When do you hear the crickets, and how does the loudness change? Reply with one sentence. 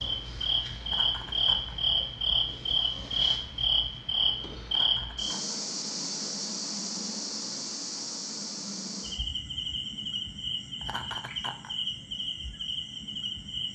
The crickets can be heard from 0.0 to 13.6 s, getting quieter.